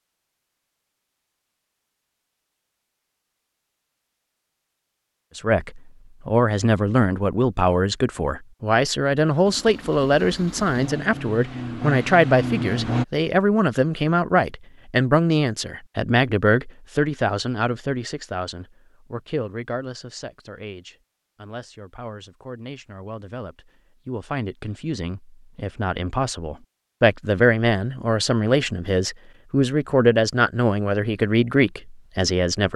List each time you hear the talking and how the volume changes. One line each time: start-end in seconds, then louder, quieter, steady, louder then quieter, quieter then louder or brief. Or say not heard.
5.3-32.7 quieter then louder.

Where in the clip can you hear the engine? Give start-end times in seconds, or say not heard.
9.4-13.1.